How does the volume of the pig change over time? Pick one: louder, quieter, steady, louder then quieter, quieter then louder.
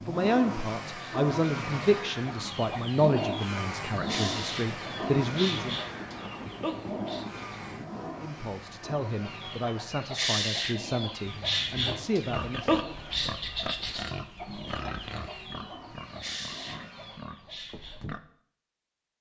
quieter.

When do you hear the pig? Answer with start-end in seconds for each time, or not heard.
11.2-18.2.